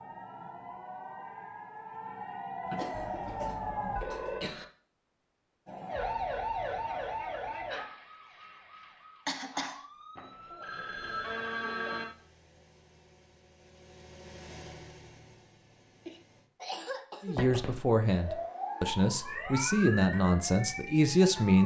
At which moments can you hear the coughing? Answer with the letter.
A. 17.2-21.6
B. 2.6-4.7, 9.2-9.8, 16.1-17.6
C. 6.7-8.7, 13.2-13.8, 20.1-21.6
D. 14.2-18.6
B.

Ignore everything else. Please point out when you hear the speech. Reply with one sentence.
You can hear the speech from 17.2 to 21.6 s.